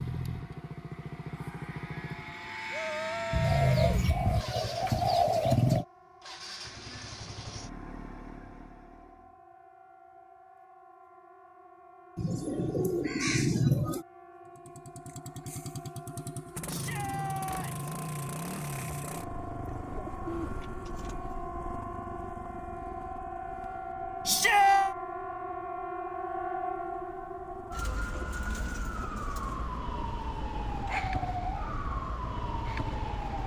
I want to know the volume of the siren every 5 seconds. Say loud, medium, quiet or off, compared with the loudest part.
quiet, quiet, quiet, medium, loud, loud, loud.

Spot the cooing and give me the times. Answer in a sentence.
The cooing can be heard from 3.3 to 5.8 s, from 12.2 to 14.1 s, from 19.9 to 21.2 s and from 27.7 to 29.6 s.